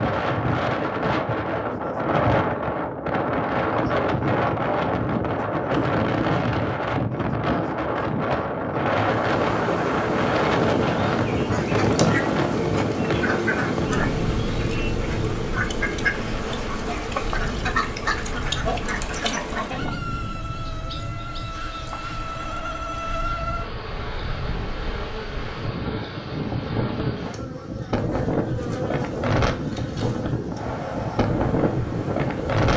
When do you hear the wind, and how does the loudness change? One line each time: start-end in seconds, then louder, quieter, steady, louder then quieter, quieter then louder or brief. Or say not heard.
0.0-32.7 quieter then louder.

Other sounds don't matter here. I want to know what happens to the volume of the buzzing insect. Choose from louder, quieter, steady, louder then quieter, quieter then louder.
quieter.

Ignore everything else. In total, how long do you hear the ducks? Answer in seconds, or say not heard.
8 s.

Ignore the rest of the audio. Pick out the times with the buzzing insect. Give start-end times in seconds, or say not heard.
9.1-32.7.